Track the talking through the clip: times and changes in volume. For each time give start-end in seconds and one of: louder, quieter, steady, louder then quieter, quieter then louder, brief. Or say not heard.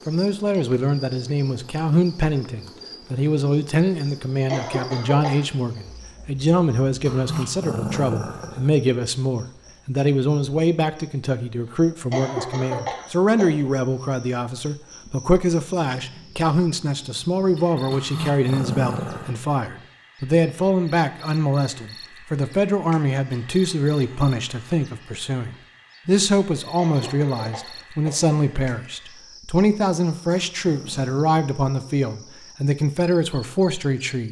0.1-34.2 steady.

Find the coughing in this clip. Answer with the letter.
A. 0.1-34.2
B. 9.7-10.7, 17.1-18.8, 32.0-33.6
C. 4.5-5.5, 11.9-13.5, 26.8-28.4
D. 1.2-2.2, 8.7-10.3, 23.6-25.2
C.